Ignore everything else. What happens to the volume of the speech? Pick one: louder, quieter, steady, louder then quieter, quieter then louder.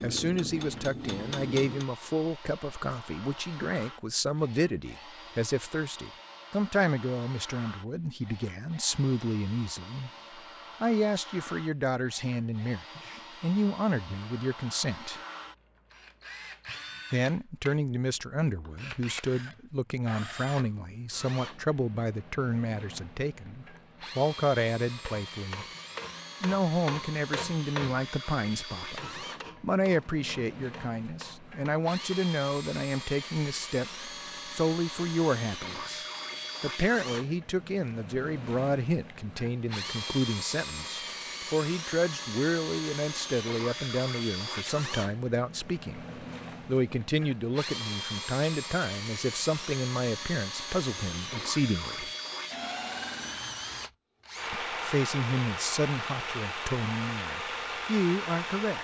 steady.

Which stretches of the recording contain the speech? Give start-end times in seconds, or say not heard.
0.0-10.1, 10.8-15.2, 17.1-25.6, 26.4-46.0, 46.6-52.1, 54.5-58.7.